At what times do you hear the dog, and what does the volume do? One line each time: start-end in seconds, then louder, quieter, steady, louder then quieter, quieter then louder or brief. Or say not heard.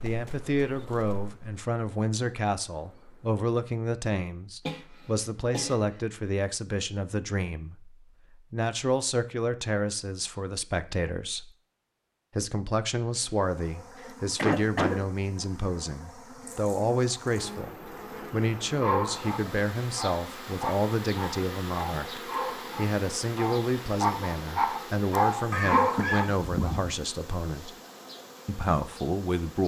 18.8-26.9 louder.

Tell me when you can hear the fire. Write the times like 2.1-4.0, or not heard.
not heard.